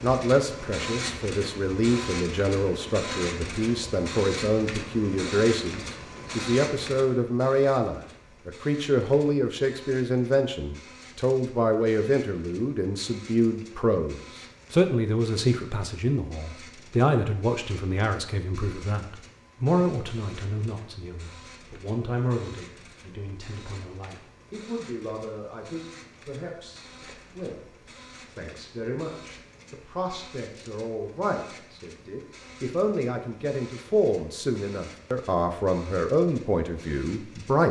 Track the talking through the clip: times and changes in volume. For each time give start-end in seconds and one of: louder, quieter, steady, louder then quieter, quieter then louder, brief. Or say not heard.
0.0-37.6 quieter then louder.